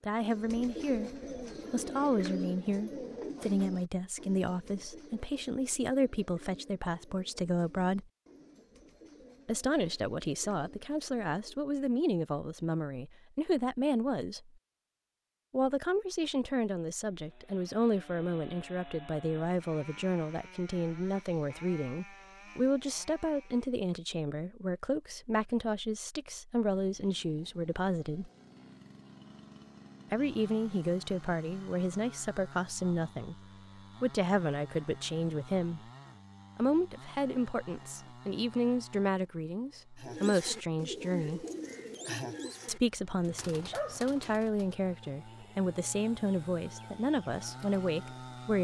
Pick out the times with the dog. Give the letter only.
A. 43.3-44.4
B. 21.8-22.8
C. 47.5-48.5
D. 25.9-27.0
A.